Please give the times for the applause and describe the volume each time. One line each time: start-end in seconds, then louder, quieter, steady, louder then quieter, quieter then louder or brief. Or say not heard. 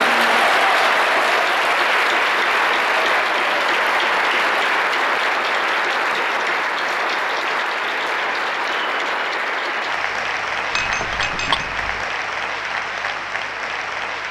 0.0-14.2 quieter.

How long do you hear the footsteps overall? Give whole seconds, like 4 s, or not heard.
not heard.